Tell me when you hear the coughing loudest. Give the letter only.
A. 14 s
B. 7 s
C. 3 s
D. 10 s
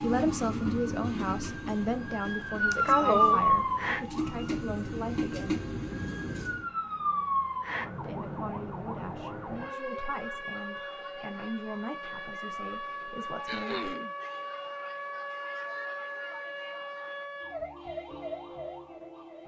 C.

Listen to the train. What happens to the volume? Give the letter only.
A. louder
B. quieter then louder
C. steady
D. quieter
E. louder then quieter
B.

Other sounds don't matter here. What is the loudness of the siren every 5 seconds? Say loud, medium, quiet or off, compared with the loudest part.
loud, medium, medium, medium.